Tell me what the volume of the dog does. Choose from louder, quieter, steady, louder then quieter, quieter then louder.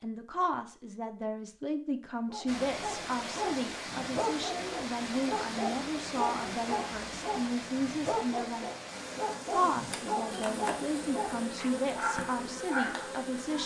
steady.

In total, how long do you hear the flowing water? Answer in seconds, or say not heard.
11 s.